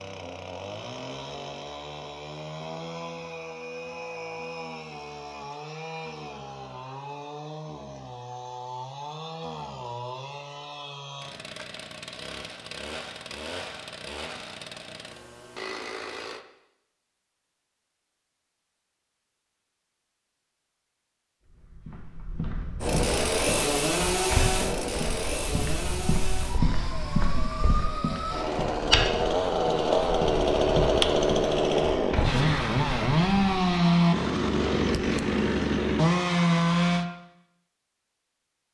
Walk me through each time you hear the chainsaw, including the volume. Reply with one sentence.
You can hear the chainsaw from 0.0 to 16.4 s, at a steady volume; and from 22.8 to 37.0 s, getting quieter then louder.